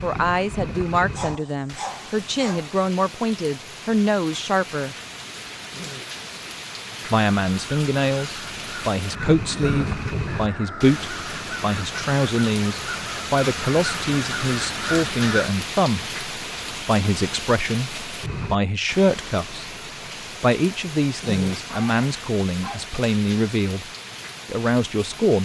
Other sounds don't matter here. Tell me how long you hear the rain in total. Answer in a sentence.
The rain can be heard for 25 seconds in total.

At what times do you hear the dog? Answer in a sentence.
The dog can be heard from 1.1 to 2.8 s and from 21.6 to 22.9 s.